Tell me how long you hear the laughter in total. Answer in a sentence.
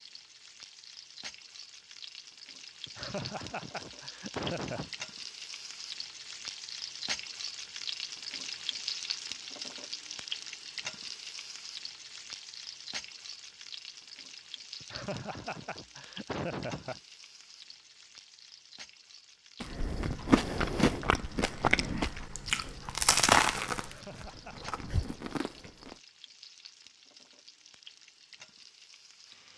You can hear the laughter for 5 seconds altogether.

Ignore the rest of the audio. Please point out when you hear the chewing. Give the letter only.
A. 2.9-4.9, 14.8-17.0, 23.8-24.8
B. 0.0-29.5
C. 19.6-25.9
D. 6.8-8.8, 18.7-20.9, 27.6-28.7
C.